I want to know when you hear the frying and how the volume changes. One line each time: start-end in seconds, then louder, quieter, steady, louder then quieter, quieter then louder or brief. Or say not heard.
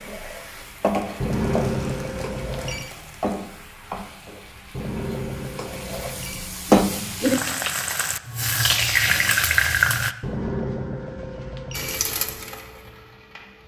0.0-10.2 quieter then louder
11.8-13.6 brief.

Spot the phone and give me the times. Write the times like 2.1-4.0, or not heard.
1.2-2.9, 4.7-6.5, 10.2-12.0.